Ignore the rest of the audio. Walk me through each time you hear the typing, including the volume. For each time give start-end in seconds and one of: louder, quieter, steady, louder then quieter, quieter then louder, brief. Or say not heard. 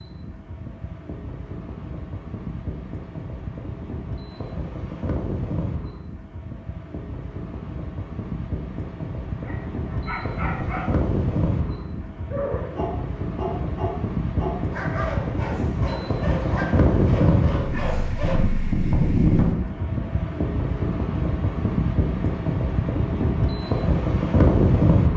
not heard.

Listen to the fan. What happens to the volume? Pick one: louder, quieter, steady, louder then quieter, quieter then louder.
louder.